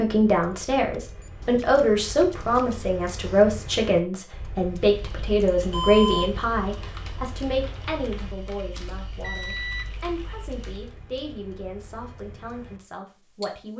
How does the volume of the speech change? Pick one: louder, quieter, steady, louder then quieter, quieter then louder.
quieter.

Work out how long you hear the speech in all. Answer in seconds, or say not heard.
14 s.